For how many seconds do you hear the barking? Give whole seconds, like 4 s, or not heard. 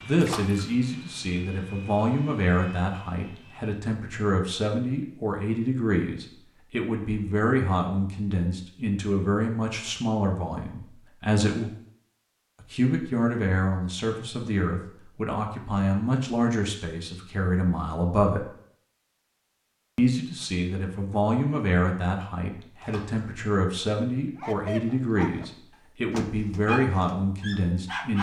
3 s.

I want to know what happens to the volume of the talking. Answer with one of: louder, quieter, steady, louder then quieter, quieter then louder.
steady.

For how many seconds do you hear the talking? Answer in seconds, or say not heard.
26 s.